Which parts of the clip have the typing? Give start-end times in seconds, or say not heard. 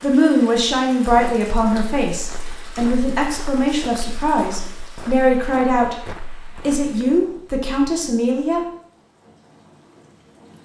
not heard.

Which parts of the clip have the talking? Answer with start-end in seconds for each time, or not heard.
0.0-8.6.